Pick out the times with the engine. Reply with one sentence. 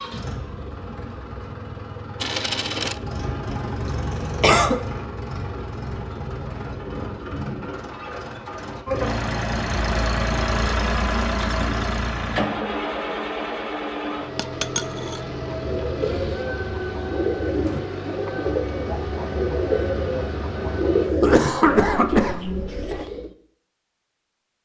You can hear the engine from 0.0 to 21.1 s.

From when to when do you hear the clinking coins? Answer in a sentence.
You can hear the clinking coins from 2.2 to 3.0 s and from 14.3 to 15.2 s.